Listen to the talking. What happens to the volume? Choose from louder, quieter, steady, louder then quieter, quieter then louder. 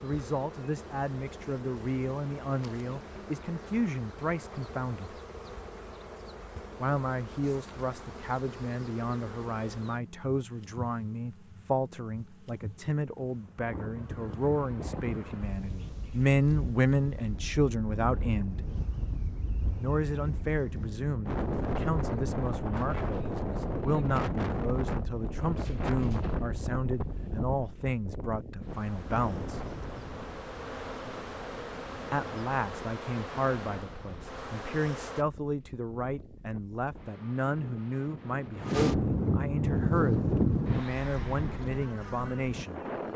steady.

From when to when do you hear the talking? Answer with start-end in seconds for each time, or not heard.
0.0-5.2, 6.8-18.6, 19.8-29.6, 32.1-42.8.